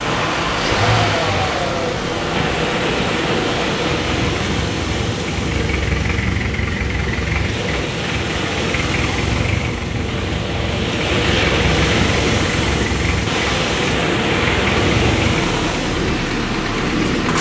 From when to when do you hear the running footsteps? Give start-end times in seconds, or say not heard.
not heard.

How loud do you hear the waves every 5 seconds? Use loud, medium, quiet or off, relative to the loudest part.
loud, medium, loud, loud.